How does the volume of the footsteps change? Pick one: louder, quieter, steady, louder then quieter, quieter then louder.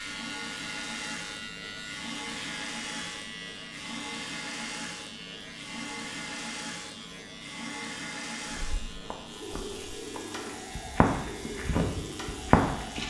louder.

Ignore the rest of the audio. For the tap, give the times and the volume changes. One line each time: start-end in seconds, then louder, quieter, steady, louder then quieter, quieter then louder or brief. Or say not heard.
0.0-13.0 steady.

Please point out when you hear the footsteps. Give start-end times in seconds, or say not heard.
8.5-13.0.